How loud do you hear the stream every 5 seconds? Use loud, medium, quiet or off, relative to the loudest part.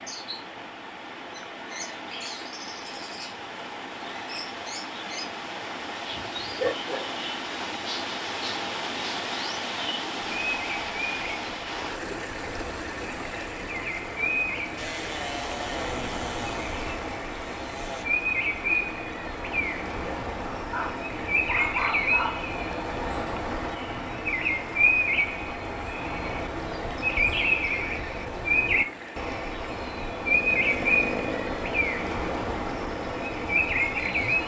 medium, loud, loud, medium, medium, medium, medium.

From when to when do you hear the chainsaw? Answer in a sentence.
The chainsaw can be heard from 14.8 to 18.1 s and from 30.2 to 34.4 s.